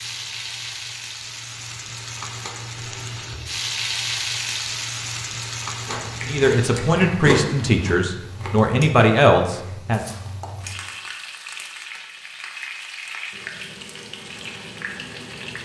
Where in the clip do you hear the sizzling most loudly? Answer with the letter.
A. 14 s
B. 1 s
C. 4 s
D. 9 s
C.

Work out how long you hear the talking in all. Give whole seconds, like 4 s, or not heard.
4 s.